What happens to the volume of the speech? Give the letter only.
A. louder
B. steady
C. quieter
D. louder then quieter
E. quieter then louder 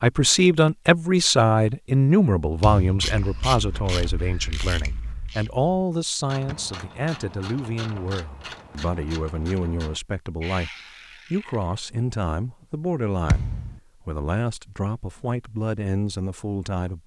C.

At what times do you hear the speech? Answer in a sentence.
The speech can be heard from 0.0 to 10.7 s and from 11.3 to 17.0 s.